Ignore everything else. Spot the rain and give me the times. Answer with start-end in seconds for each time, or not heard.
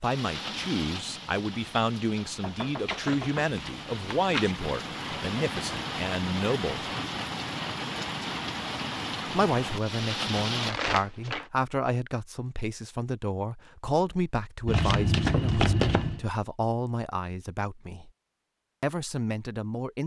0.0-10.8.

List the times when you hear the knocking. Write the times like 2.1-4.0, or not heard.
2.4-3.5.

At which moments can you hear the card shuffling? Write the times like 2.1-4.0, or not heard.
2.9-4.5, 10.6-11.4, 14.7-16.2.